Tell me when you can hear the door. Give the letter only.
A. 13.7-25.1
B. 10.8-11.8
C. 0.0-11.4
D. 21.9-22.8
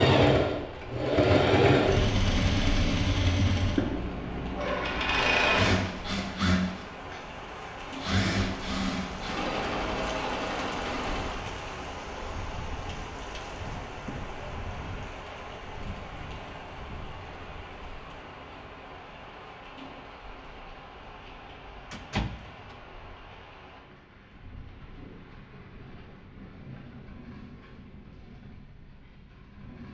D.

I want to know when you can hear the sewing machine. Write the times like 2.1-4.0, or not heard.
0.0-11.4.